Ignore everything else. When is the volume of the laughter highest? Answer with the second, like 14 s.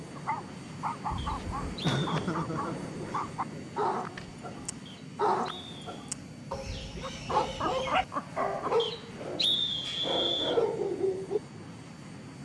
2 s.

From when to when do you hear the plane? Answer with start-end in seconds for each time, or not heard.
0.0-12.4.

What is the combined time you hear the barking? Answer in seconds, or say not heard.
11 s.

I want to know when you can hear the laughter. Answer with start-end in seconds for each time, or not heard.
1.4-3.3, 7.0-8.8.